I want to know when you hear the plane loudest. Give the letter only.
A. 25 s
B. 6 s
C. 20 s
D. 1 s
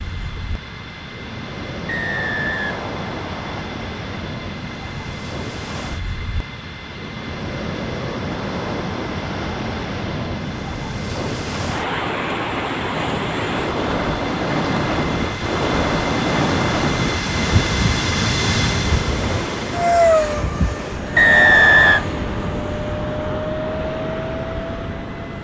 C.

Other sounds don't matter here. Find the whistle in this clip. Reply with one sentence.
The whistle can be heard from 1.9 to 3.6 s and from 21.1 to 22.1 s.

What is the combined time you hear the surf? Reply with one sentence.
You can hear the surf for 25 seconds altogether.